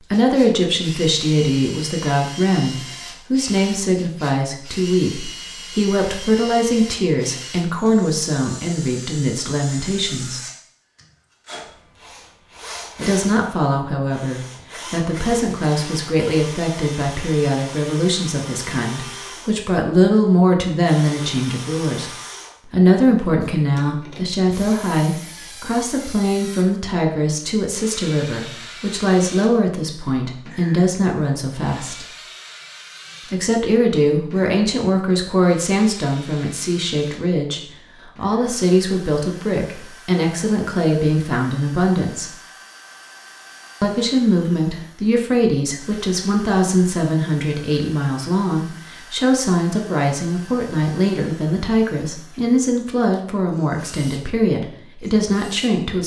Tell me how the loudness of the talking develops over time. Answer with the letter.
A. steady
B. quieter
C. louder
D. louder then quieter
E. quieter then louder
A.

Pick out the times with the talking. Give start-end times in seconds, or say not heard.
0.1-10.4, 12.9-32.1, 33.3-42.4, 43.8-56.0.